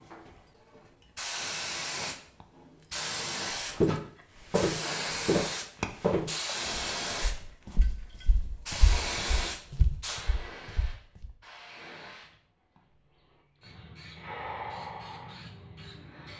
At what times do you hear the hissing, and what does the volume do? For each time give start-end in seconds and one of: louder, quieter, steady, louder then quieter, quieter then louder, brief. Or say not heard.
0.1-16.3 quieter.